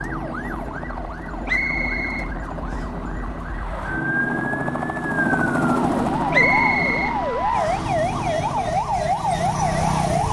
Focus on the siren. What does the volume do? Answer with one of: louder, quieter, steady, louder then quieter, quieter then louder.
louder.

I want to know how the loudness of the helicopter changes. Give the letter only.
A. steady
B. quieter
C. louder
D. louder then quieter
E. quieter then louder
D.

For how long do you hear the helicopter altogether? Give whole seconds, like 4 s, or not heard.
9 s.